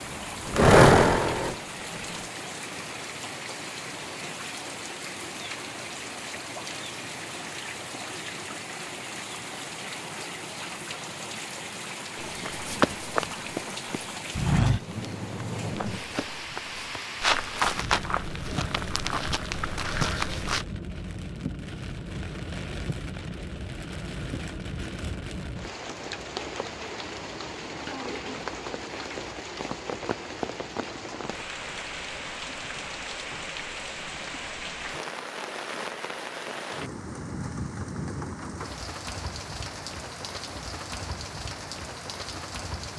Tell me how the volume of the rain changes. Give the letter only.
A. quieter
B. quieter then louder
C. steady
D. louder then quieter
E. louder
C.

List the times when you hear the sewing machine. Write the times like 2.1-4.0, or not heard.
0.1-2.3.